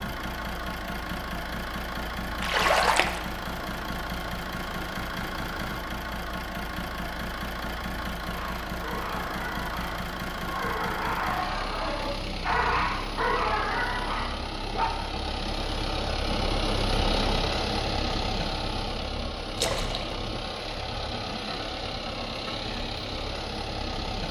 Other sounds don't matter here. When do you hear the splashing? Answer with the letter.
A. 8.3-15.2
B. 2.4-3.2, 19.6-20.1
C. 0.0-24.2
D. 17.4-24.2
B.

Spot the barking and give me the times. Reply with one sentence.
The barking can be heard from 8.3 to 15.2 s.